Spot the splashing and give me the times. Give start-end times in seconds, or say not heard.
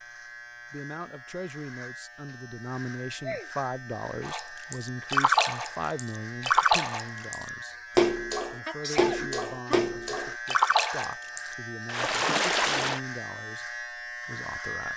4.2-13.0.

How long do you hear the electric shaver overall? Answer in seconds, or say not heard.
15 s.